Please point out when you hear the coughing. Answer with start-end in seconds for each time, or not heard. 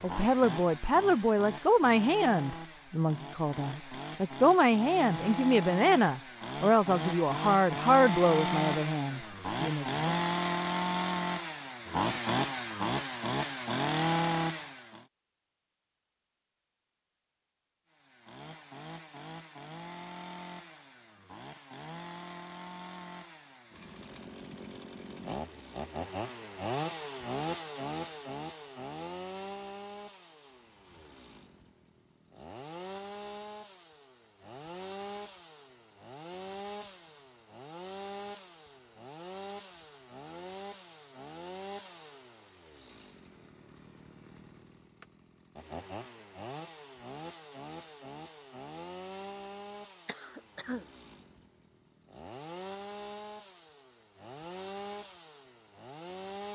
50.0-50.9.